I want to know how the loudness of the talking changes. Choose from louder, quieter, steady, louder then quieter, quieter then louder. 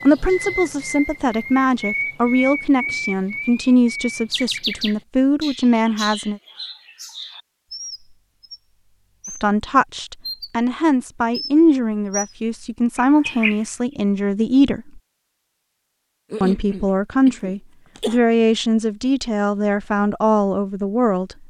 steady.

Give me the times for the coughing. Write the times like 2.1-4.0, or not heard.
16.3-18.2.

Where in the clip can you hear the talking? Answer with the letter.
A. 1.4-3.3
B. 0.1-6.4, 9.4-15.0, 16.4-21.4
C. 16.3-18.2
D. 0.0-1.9
B.